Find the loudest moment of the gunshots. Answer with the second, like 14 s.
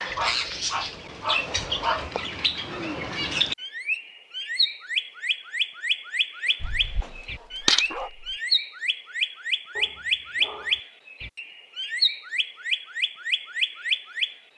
8 s.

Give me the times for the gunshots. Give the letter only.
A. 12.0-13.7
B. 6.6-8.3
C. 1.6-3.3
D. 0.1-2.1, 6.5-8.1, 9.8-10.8
B.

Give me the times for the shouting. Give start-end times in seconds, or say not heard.
not heard.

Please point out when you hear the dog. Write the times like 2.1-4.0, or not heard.
0.1-2.1, 6.5-8.1, 9.8-10.8.